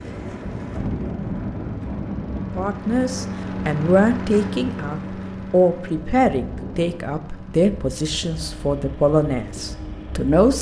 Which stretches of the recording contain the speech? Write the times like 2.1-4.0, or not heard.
2.5-10.5.